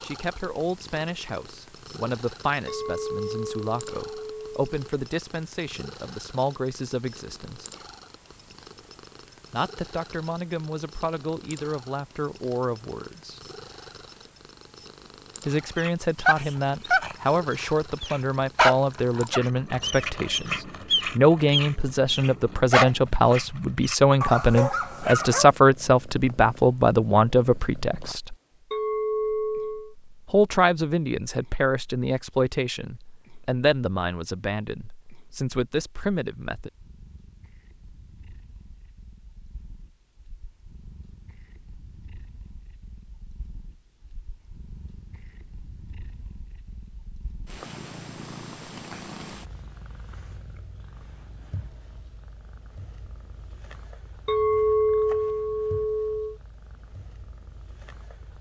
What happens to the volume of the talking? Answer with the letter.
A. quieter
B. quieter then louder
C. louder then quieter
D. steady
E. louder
C.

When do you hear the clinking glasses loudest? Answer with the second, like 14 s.
55 s.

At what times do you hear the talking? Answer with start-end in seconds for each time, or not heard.
0.0-7.7, 9.5-13.4, 15.4-28.4, 30.2-36.7.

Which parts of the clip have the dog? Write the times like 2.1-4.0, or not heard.
15.8-25.4.